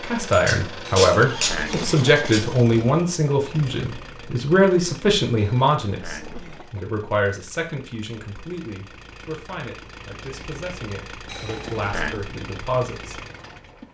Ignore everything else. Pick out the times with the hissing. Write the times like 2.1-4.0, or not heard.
0.0-2.4.